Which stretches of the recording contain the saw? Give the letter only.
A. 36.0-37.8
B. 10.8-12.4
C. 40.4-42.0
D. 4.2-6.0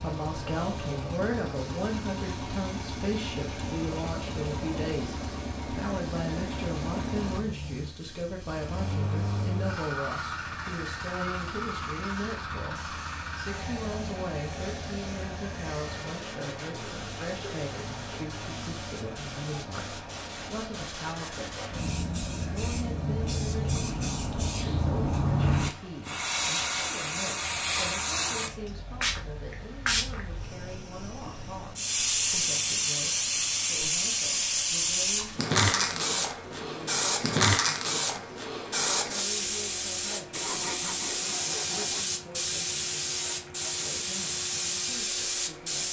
C.